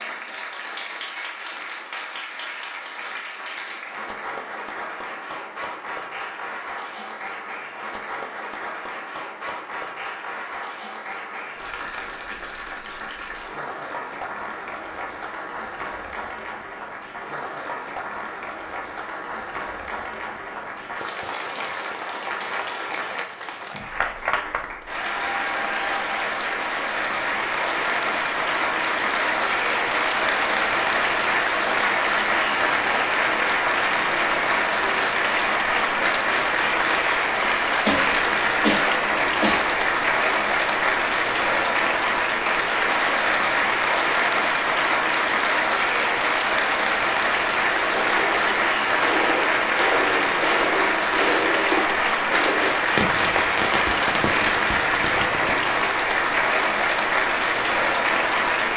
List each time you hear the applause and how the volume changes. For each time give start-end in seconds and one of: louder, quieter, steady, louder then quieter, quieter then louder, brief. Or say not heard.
0.0-58.7 louder.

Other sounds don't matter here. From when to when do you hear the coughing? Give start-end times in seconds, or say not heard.
37.9-39.8.